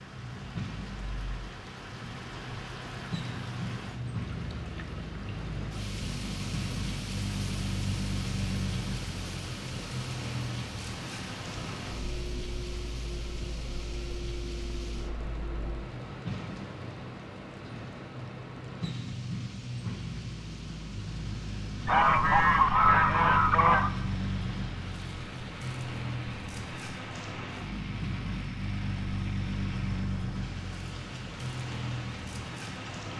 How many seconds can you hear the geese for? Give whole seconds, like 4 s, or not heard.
2 s.